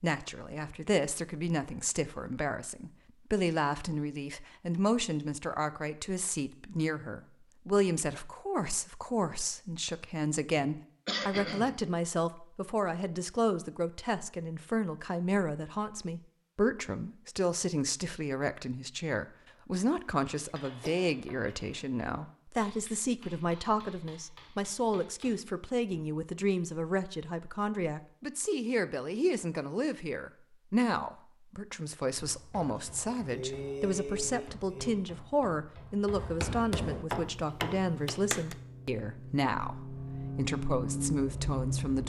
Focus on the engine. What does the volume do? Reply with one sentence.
The loudness of the engine goes up.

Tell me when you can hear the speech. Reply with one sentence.
The speech can be heard from 0.0 to 42.0 s.